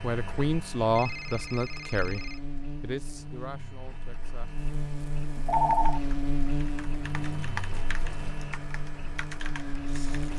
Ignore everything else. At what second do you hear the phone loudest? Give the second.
6 s.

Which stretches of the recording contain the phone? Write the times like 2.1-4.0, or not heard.
0.9-2.4, 5.3-6.0.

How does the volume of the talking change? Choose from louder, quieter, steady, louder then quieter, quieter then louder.
quieter.